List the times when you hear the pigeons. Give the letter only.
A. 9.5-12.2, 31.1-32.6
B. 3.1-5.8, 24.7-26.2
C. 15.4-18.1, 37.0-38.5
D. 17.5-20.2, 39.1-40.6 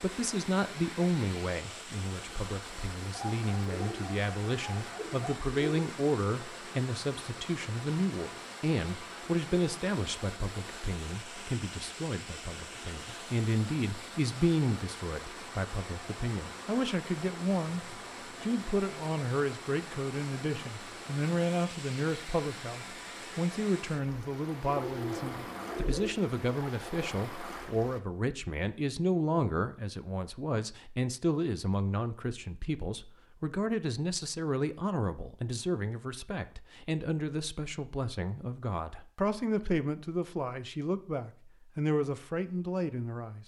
B.